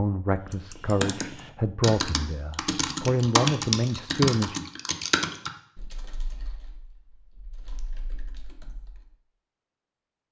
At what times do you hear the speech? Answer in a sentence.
The speech can be heard from 0.0 to 4.7 s.